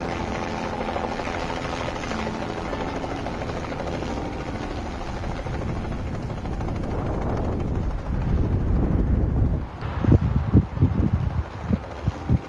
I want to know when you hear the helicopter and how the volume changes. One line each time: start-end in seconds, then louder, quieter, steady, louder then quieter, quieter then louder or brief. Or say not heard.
0.0-12.4 quieter.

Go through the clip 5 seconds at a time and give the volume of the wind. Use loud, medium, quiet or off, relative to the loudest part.
quiet, medium, loud.